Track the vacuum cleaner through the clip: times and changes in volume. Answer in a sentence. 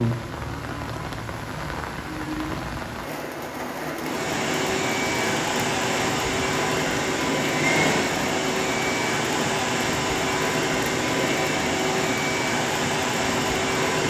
You can hear the vacuum cleaner from 4.0 to 14.0 s, at a steady volume.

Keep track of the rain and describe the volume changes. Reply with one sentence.
The loudness of the rain stays about the same.